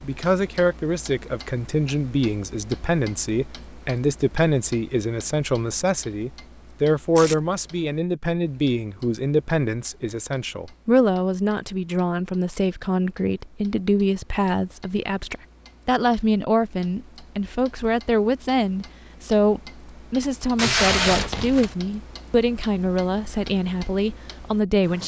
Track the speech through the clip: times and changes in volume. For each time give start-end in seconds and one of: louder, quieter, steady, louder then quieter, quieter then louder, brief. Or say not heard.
0.0-25.0 steady.